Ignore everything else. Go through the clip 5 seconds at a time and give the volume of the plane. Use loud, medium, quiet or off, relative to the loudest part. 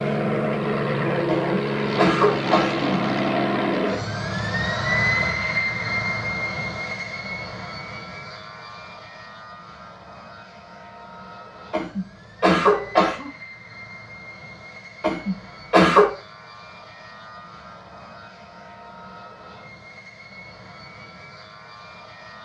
loud, medium, quiet, quiet, quiet.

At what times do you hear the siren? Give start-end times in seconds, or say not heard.
not heard.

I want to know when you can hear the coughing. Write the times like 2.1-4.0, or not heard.
1.2-3.0, 11.7-13.3, 15.0-16.1.